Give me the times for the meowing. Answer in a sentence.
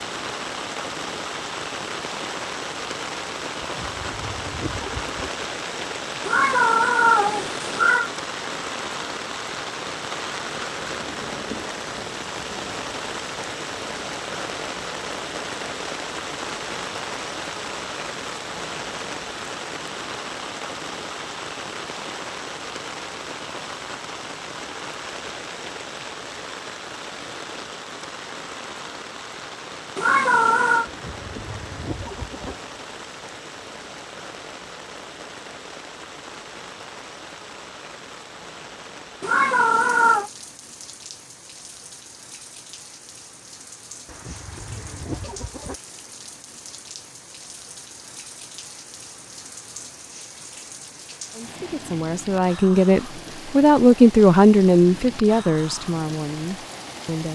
You can hear the meowing from 6.2 to 8.1 s, from 29.9 to 30.9 s and from 39.2 to 40.3 s.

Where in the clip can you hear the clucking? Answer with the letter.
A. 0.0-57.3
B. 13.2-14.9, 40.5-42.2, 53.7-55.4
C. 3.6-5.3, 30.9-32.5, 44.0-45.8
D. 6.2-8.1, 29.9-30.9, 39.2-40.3
C.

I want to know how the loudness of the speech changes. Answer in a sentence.
The loudness of the speech goes up, then down.